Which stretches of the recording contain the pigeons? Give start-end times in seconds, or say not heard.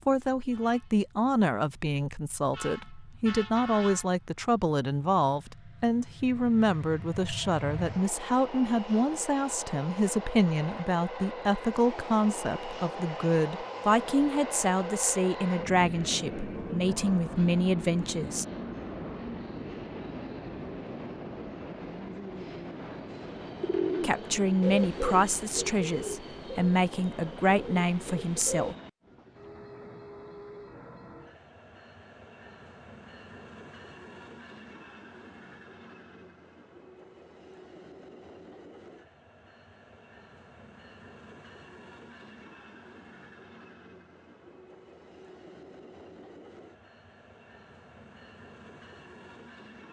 23.6-28.8.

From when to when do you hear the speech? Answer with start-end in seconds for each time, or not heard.
0.1-18.4, 24.0-28.8.